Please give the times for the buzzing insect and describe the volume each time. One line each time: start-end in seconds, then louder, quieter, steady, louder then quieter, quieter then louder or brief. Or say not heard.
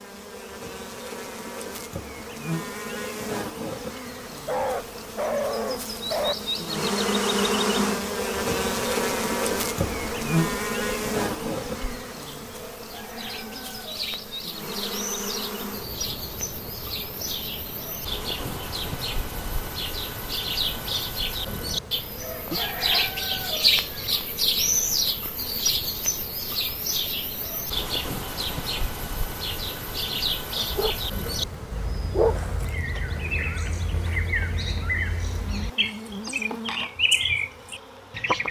0.0-38.4 quieter.